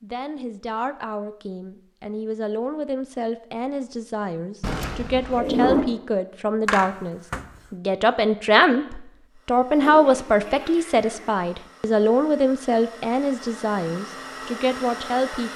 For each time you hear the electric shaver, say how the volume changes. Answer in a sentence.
The electric shaver can't be heard in this clip.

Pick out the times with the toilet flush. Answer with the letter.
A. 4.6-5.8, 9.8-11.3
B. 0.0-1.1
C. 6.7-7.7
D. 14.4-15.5
A.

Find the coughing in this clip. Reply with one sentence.
The coughing can be heard from 6.7 to 7.7 s.